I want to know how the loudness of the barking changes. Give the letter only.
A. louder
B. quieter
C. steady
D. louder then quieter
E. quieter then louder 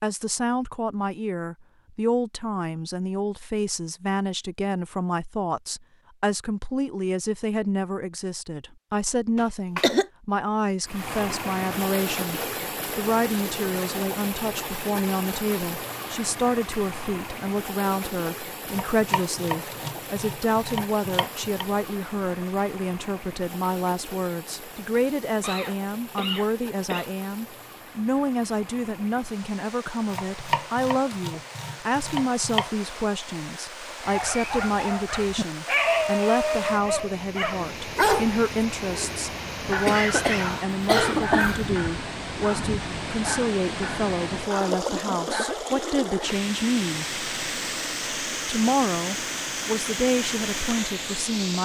B.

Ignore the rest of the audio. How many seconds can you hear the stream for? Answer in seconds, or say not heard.
41 s.